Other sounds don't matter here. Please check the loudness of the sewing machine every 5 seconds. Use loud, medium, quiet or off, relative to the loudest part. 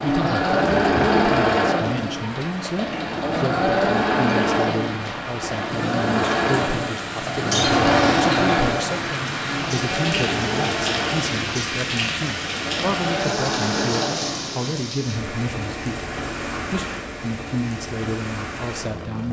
loud, loud, medium, off.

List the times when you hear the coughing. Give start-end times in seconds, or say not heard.
7.5-8.7.